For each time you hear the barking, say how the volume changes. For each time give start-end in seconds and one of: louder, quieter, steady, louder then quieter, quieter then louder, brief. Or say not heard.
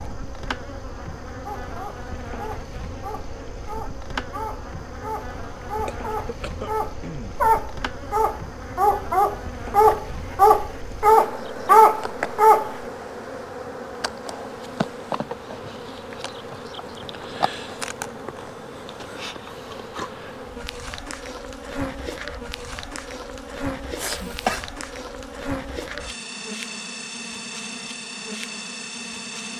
1.4-12.8 louder.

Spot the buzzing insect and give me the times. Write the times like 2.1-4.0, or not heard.
0.0-29.5.